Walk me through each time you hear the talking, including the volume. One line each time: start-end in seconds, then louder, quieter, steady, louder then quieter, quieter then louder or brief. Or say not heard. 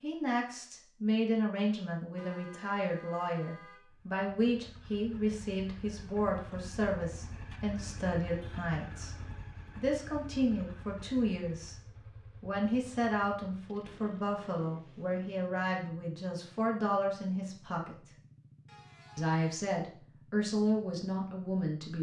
0.0-18.1 steady
19.1-21.9 brief.